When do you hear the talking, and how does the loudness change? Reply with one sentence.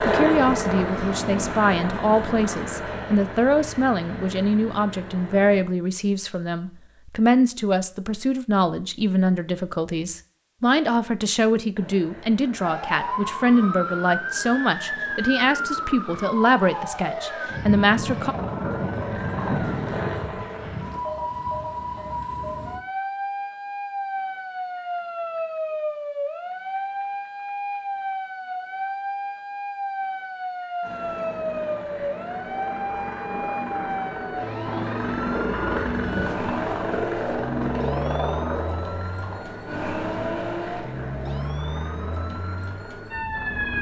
You can hear the talking from 0.1 to 18.4 s, at a steady volume.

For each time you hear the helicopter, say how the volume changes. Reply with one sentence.
You can hear the helicopter from 0.0 to 5.7 s, getting quieter; from 11.8 to 21.0 s, getting louder; and from 30.8 to 43.7 s, getting louder then quieter.